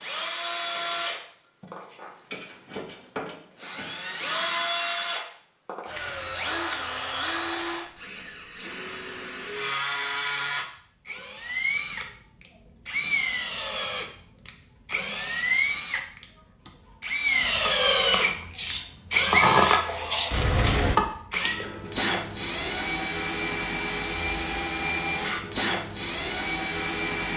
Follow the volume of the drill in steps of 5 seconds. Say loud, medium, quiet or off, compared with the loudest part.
medium, medium, medium, loud, medium, medium.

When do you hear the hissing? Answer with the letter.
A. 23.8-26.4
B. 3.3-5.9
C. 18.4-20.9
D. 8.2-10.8
C.